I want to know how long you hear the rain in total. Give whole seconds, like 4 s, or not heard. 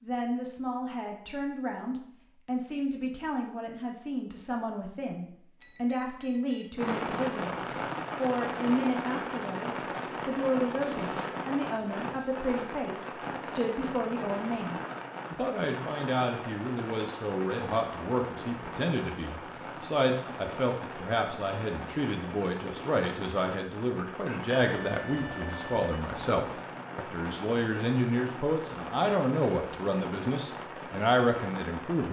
25 s.